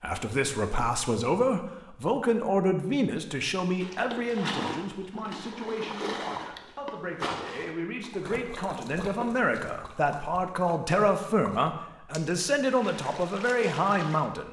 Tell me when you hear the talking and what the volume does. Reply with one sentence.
The talking can be heard from 0.0 to 14.4 s, getting quieter then louder.